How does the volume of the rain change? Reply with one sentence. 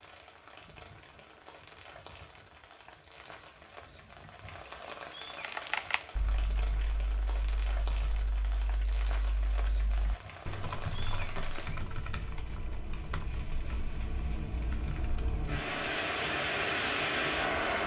The volume of the rain goes up.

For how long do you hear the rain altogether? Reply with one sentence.
You can hear the rain for 18 seconds altogether.